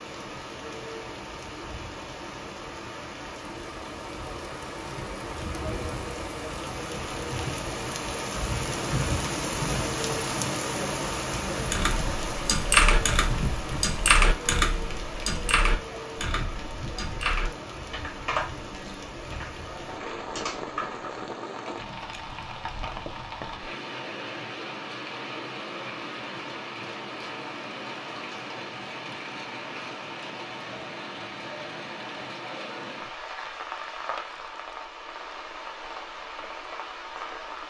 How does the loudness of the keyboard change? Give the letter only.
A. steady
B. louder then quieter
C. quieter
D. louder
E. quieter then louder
C.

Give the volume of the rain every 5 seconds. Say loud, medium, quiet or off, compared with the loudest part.
medium, loud, loud, medium, medium, medium, medium, medium.